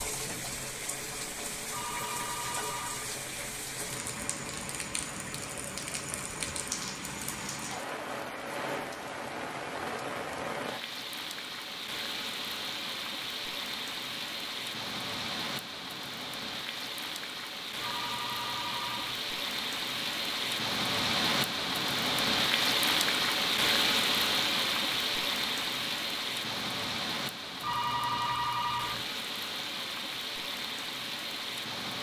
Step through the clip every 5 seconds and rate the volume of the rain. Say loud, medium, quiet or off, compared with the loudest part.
medium, medium, medium, medium, loud, medium, medium.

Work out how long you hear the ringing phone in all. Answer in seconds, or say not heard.
4 s.